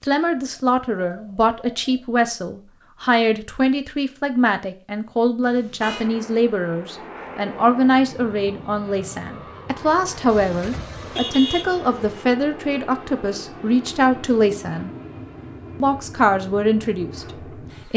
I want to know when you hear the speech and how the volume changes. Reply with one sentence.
You can hear the speech from 0.0 to 14.9 s, at a steady volume; and briefly from 15.8 to 17.9 s.